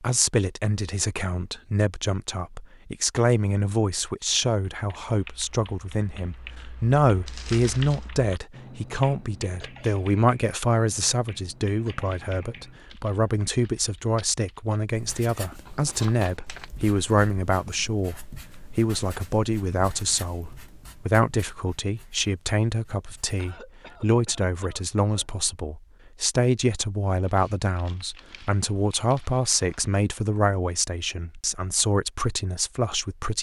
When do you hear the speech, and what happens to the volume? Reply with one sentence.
You can hear the speech from 0.0 to 33.3 s, at a steady volume.